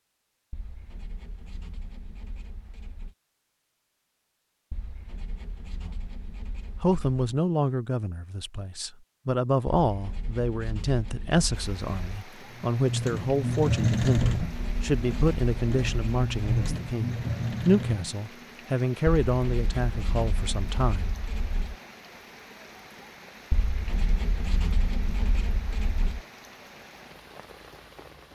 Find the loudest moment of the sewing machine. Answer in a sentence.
The loudest moment of the sewing machine is at 14 seconds.